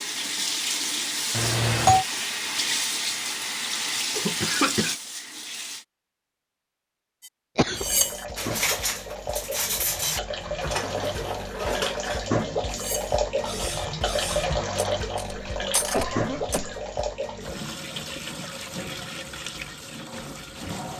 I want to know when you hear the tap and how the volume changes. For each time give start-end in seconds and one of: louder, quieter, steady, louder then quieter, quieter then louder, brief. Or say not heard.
0.0-5.8 steady
7.8-20.9 louder then quieter.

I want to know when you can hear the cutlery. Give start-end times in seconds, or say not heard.
7.2-16.6.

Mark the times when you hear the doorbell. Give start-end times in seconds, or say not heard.
1.3-2.0.